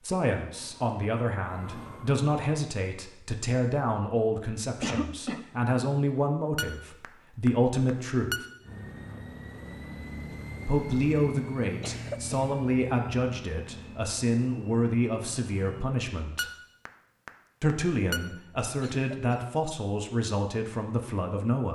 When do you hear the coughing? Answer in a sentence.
The coughing can be heard from 4.8 to 5.5 s, from 11.6 to 12.6 s and from 18.8 to 19.6 s.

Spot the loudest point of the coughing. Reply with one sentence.
The volume of the coughing peaks at 5 seconds.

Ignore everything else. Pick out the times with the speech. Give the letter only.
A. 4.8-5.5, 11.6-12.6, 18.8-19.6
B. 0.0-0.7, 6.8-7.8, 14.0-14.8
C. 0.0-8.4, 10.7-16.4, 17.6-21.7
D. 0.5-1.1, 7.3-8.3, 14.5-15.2
C.